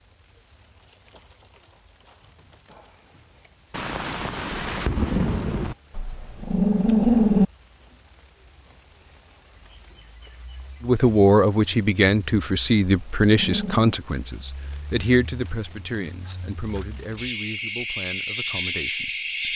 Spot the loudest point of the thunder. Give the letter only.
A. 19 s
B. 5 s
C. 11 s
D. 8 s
B.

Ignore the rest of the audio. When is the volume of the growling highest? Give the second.
7 s.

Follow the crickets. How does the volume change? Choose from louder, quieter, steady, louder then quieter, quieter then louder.
louder.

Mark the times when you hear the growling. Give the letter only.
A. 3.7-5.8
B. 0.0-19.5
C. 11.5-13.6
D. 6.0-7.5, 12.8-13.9
D.